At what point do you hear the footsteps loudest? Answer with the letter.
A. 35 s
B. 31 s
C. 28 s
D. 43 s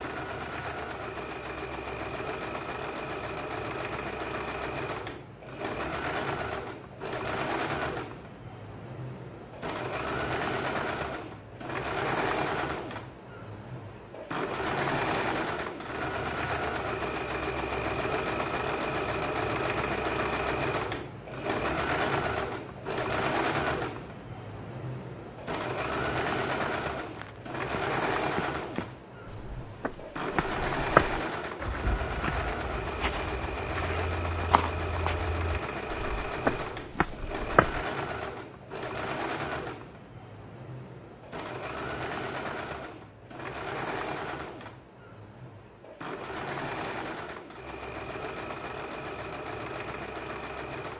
B.